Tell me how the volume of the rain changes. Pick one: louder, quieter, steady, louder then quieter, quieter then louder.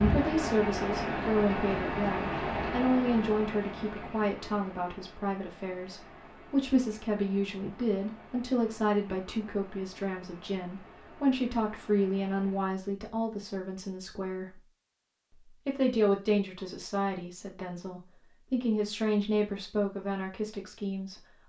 quieter.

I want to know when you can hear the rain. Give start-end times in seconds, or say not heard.
0.0-12.8.